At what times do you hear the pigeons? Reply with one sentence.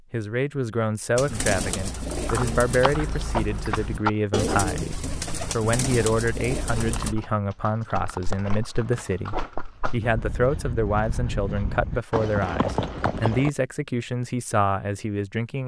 The pigeons can be heard from 1.1 to 7.2 s.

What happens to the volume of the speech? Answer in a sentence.
The loudness of the speech stays about the same.